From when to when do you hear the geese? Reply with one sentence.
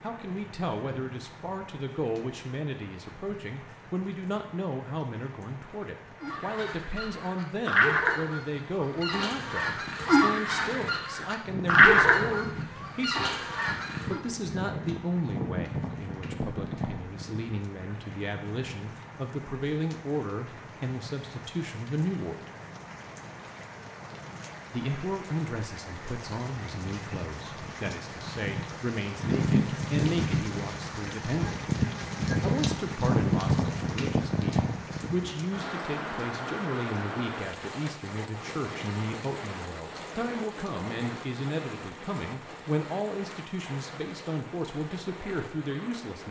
The geese can be heard from 6.2 to 14.2 s.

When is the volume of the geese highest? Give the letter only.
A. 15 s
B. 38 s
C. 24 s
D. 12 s
D.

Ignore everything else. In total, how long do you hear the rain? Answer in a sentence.
You can hear the rain for 46 seconds altogether.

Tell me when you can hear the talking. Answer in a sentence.
The talking can be heard from 0.0 to 13.4 s, from 14.1 to 22.4 s, from 24.7 to 31.6 s and from 32.4 to 46.2 s.